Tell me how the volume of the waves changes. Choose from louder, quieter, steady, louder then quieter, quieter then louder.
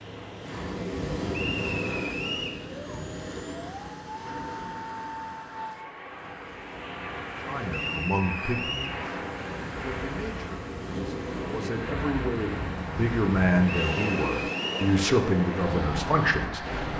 quieter then louder.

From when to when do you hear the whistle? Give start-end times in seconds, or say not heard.
1.3-2.6, 7.7-9.0, 13.7-14.9.